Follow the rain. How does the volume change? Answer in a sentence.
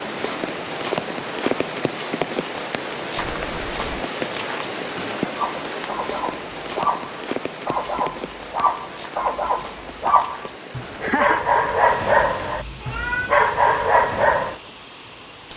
The volume of the rain goes down.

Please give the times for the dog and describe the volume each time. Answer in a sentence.
You can hear the dog from 5.3 to 14.6 s, getting louder.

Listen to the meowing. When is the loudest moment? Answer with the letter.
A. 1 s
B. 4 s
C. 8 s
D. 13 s
D.